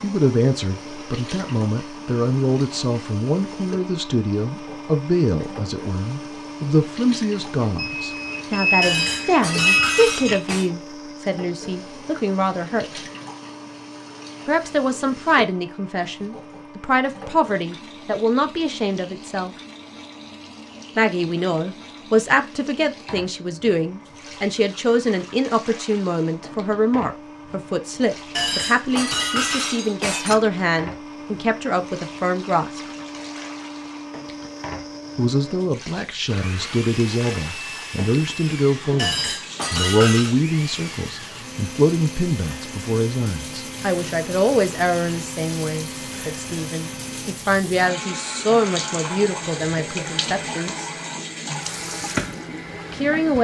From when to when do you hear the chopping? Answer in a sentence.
The chopping can't be heard in this clip.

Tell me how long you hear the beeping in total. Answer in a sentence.
The beeping can be heard for 3 seconds in total.